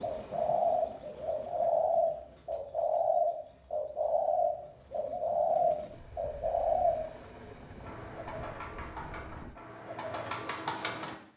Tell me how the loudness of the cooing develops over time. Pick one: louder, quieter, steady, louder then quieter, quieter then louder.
quieter.